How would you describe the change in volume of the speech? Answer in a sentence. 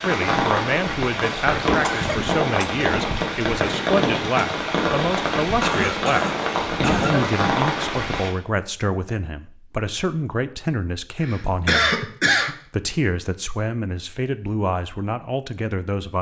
The loudness of the speech stays about the same.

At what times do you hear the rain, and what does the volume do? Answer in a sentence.
The rain can be heard from 0.0 to 8.3 s, at a steady volume.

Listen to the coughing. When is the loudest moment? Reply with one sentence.
The volume of the coughing peaks at 12 seconds.